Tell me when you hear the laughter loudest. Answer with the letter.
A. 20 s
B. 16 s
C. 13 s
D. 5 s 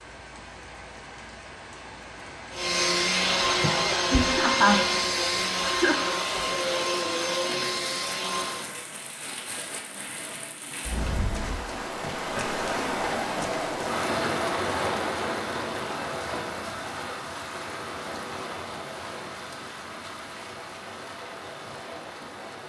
D.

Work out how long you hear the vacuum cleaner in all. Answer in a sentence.
The vacuum cleaner can be heard for 6 seconds in total.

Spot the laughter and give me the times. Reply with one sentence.
You can hear the laughter from 3.6 to 6.0 s.